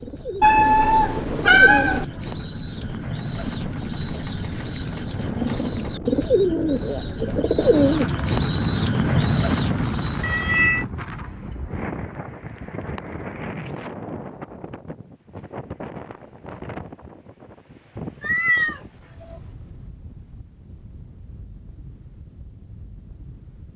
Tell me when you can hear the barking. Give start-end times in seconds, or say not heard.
not heard.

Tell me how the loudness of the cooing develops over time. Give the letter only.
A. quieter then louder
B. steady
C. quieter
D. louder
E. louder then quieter
D.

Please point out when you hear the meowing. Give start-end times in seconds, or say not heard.
0.4-2.0, 10.2-10.8, 18.2-19.4.